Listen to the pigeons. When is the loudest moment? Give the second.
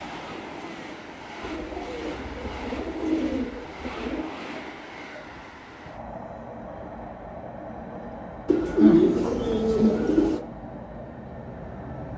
9 s.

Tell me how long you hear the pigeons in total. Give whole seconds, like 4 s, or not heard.
5 s.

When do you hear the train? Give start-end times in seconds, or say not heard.
0.0-12.1.